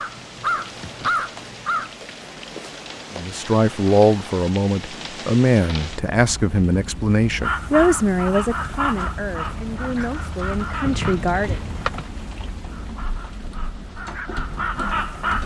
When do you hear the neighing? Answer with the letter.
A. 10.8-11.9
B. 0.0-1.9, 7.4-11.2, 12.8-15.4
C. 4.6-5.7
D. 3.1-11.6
A.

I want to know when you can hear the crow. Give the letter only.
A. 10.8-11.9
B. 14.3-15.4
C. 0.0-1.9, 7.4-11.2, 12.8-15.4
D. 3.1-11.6
C.